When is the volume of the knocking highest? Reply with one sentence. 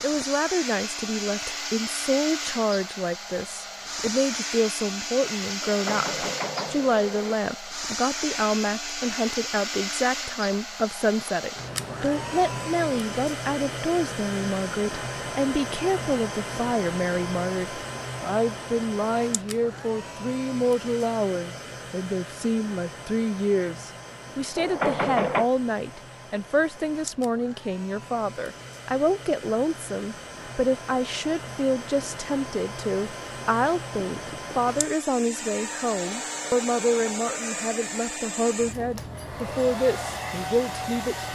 The loudest moment of the knocking is at 25 seconds.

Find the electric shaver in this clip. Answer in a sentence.
You can't hear the electric shaver here.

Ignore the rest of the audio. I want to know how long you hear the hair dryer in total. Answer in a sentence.
The hair dryer can be heard for 41 seconds in total.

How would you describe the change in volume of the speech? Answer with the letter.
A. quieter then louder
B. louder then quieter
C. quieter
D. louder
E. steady
E.